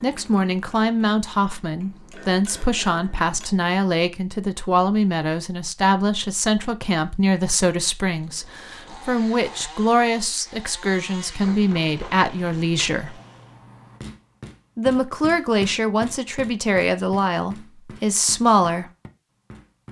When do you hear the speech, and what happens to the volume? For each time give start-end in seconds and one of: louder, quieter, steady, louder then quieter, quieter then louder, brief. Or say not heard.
0.0-13.2 steady
14.8-18.9 steady.